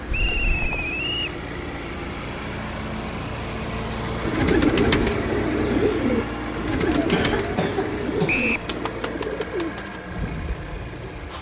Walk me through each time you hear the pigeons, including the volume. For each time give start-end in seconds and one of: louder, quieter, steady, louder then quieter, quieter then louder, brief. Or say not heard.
4.2-11.3 quieter.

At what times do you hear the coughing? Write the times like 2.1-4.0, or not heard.
0.1-0.9, 6.8-8.4.